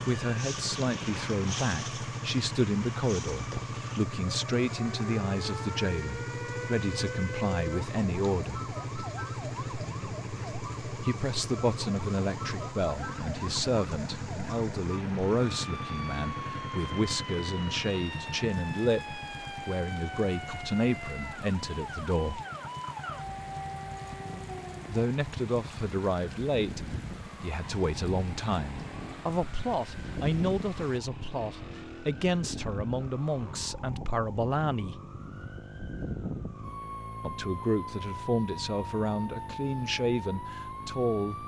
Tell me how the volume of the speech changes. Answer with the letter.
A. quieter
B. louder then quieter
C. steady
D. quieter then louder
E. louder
C.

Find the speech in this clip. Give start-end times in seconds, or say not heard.
0.0-8.7, 11.0-22.4, 24.9-35.0, 37.2-41.4.